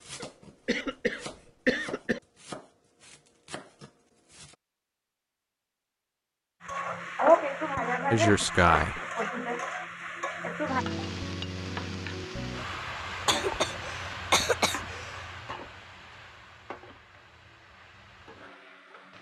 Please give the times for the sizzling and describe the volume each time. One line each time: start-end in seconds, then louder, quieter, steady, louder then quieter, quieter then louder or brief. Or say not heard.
6.6-19.1 quieter.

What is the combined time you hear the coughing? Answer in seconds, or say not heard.
5 s.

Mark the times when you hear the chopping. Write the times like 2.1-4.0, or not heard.
0.0-4.5.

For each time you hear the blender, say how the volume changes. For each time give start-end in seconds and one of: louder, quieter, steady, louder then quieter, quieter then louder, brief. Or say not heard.
not heard.